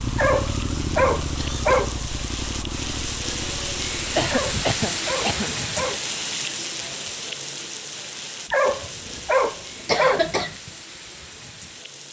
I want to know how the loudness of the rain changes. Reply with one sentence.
The loudness of the rain goes up, then down.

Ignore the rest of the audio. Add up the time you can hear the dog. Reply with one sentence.
The dog can be heard for 5 seconds in total.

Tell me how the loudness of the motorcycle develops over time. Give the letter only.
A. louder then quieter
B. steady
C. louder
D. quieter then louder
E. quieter
E.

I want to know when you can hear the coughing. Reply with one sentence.
The coughing can be heard from 1.4 to 1.8 s, from 4.2 to 5.5 s and from 9.8 to 10.6 s.